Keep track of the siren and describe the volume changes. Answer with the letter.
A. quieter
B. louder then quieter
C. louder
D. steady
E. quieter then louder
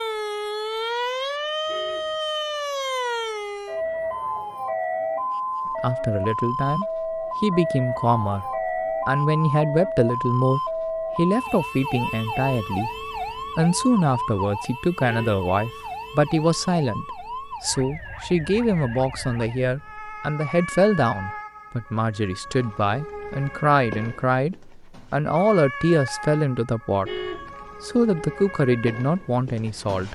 A.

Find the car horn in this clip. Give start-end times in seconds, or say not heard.
1.6-2.2, 14.9-15.4, 27.0-27.6.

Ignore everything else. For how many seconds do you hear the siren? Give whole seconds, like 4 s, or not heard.
30 s.